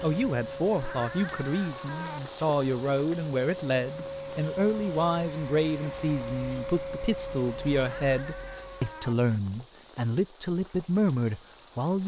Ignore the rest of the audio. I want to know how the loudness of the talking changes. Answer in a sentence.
The loudness of the talking stays about the same.